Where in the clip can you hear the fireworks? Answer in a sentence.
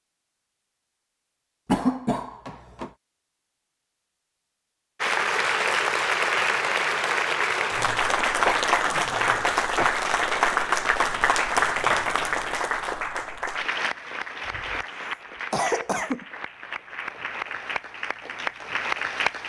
You can't hear the fireworks here.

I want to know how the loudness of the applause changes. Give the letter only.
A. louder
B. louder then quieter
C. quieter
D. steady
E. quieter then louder
C.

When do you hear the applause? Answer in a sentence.
You can hear the applause from 5.0 to 19.4 s.